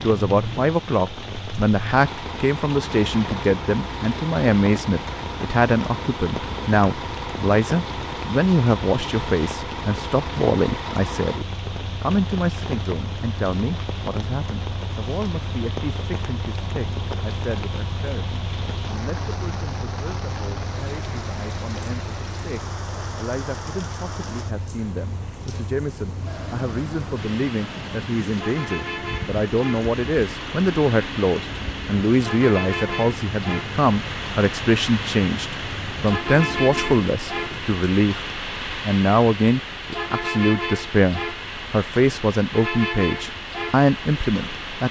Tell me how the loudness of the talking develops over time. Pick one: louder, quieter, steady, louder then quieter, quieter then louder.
quieter then louder.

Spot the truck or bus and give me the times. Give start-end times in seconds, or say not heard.
0.0-44.8.